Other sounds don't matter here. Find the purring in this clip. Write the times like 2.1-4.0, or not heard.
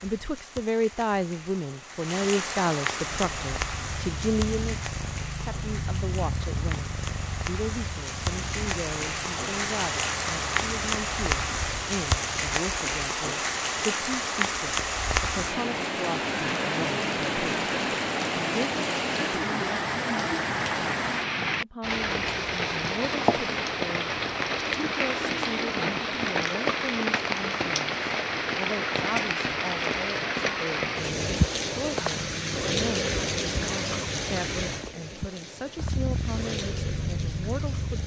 3.0-12.5, 35.8-38.0.